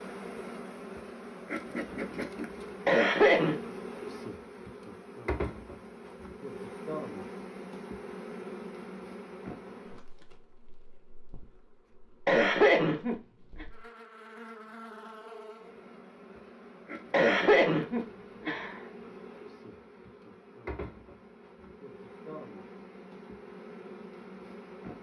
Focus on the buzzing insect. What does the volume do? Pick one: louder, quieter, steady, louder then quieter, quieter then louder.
quieter then louder.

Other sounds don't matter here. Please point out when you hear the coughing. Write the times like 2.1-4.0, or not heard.
2.9-3.6, 12.2-13.7, 17.1-18.8.